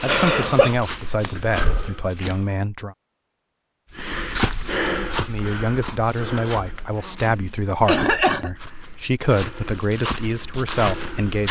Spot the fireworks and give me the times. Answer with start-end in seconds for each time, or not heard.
not heard.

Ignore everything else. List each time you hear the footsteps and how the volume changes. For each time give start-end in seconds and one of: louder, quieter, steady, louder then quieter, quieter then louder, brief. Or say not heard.
0.0-2.5 brief
4.0-11.4 quieter then louder.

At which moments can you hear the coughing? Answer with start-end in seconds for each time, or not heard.
0.1-0.8, 7.0-8.5.